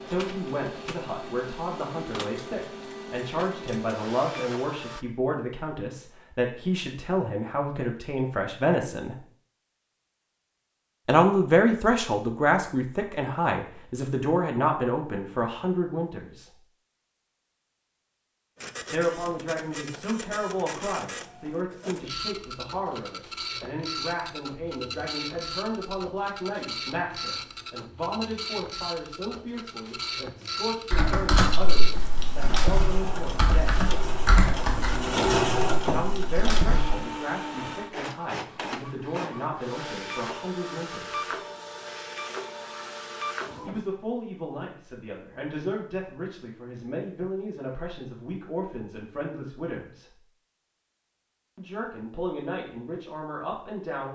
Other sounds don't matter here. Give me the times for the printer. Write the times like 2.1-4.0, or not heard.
0.0-5.0, 18.6-43.9.